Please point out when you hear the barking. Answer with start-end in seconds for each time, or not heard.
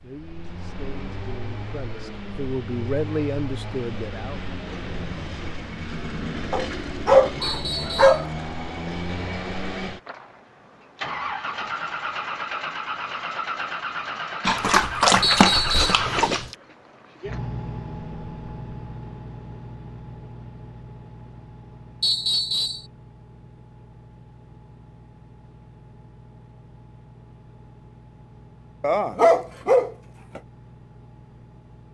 6.5-8.2, 14.4-16.6, 28.8-30.4.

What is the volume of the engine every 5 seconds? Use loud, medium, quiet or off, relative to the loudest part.
medium, loud, loud, loud, quiet, quiet, quiet.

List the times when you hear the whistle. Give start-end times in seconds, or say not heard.
7.4-8.2, 15.2-16.0, 22.0-22.9.